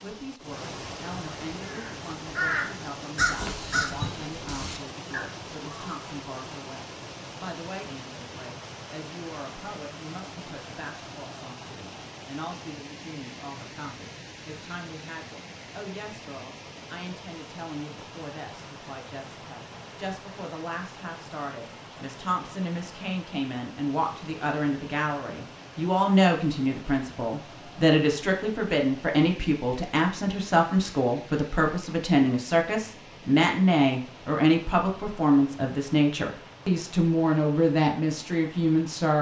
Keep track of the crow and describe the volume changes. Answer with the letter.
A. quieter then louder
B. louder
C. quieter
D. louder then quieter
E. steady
C.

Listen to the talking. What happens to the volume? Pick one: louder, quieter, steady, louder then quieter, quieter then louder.
louder.